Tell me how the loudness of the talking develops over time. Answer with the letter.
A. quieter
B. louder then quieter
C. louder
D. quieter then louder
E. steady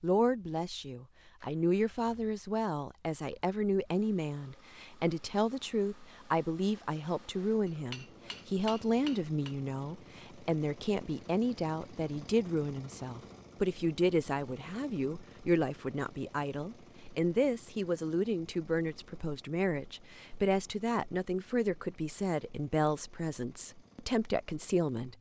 E.